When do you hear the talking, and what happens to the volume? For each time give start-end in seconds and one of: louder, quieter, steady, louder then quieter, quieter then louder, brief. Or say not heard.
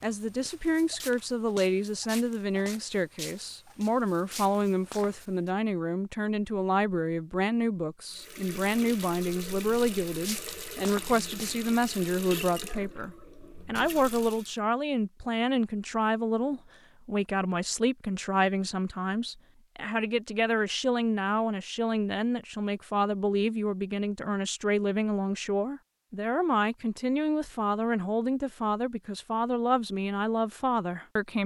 0.0-31.4 steady.